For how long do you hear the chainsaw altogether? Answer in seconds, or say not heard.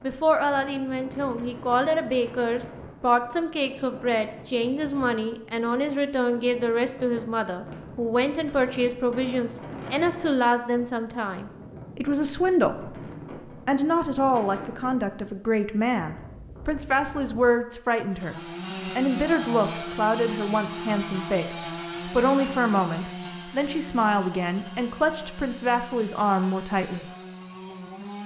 10 s.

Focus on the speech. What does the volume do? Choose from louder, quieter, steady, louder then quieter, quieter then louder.
steady.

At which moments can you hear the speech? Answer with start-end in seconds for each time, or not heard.
0.0-13.0, 13.7-27.1.